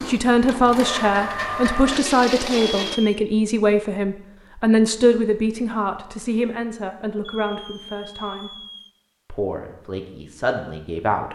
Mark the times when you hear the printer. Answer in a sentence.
The printer can be heard from 0.0 to 3.0 s.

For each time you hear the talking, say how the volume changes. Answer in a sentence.
You can hear the talking from 0.1 to 8.5 s, getting quieter; and briefly from 9.2 to 11.3 s.